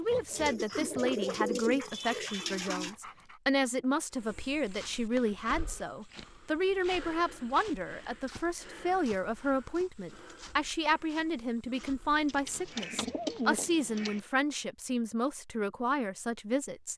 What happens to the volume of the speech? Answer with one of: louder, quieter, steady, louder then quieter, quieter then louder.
steady.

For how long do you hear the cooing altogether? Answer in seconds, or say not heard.
5 s.